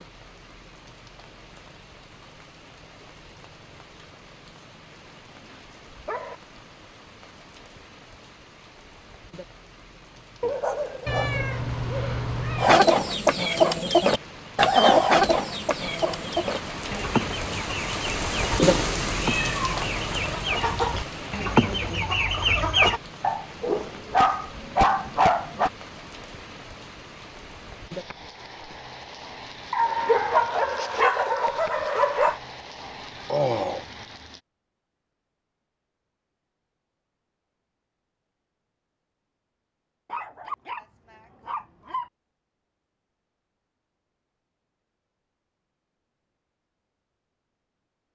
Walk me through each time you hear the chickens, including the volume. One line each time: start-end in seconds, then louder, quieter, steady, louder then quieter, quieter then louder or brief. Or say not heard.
12.6-23.0 quieter then louder.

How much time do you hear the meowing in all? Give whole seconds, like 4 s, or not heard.
4 s.